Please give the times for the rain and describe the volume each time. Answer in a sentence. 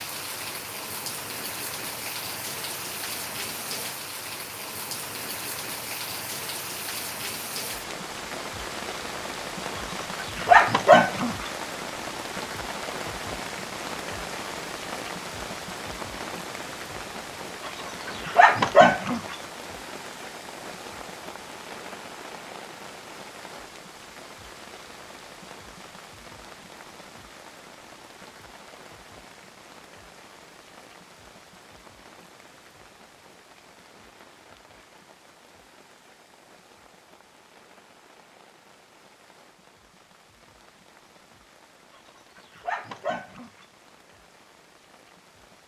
The rain can be heard from 0.0 to 45.6 s, getting quieter.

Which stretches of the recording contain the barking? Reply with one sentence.
The barking can be heard from 9.8 to 11.5 s, from 17.6 to 19.4 s and from 42.4 to 43.6 s.